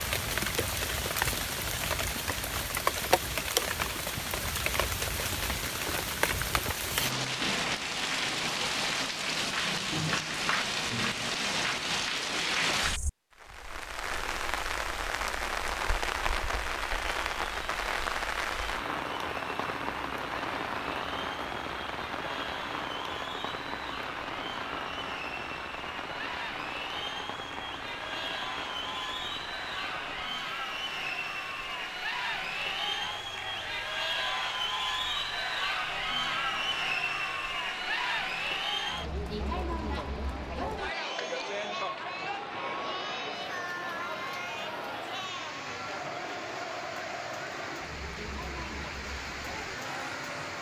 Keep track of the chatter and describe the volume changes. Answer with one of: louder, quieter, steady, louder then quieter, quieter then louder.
louder then quieter.